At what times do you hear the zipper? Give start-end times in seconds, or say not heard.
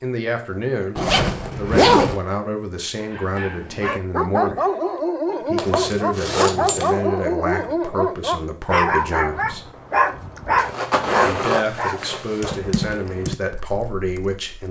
0.9-2.2, 5.5-7.0, 10.6-12.6.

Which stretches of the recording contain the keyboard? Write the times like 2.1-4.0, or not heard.
12.4-14.6.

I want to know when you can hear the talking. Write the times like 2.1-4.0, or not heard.
0.0-4.6, 5.5-9.7, 11.2-14.6.